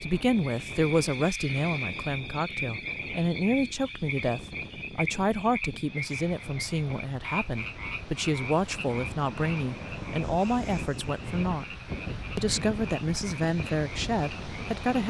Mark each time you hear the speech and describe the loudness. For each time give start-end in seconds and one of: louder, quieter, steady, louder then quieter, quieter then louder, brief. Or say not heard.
0.0-11.8 steady
12.3-15.0 brief.